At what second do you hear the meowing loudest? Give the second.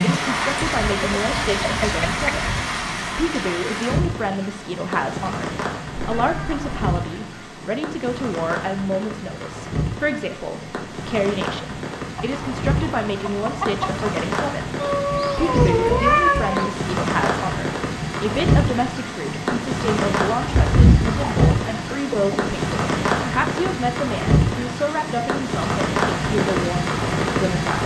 16 s.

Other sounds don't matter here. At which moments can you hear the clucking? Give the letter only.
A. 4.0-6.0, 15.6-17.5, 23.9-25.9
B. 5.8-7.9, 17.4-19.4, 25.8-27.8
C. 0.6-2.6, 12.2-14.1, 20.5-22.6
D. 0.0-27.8
C.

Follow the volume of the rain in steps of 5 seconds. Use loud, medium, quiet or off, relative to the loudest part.
loud, medium, medium, loud, loud, loud.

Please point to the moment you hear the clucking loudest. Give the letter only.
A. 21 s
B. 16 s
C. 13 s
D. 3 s
A.